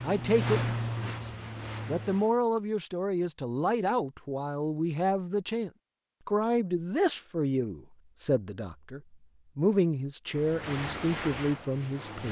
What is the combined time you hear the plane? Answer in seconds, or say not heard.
4 s.